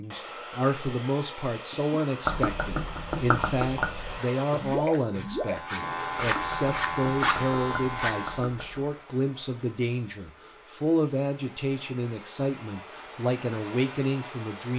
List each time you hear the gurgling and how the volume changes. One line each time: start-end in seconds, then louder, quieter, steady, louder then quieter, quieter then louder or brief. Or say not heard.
1.7-8.9 quieter.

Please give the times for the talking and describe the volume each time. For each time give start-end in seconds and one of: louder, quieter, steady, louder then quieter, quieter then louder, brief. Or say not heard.
0.0-14.7 steady.